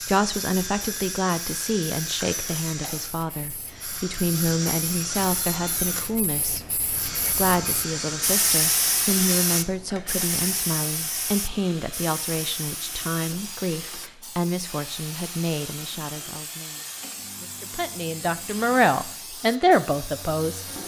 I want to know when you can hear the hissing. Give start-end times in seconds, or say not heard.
0.0-20.8.